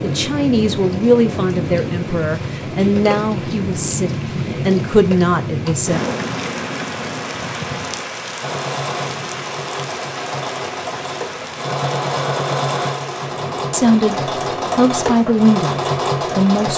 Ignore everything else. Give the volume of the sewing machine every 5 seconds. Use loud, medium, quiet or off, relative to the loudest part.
off, medium, loud, loud.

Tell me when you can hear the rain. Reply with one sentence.
You can hear the rain from 0.0 to 16.4 s.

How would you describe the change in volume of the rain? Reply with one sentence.
The volume of the rain goes down.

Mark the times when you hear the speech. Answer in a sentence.
You can hear the speech from 0.0 to 6.0 s and from 13.7 to 16.7 s.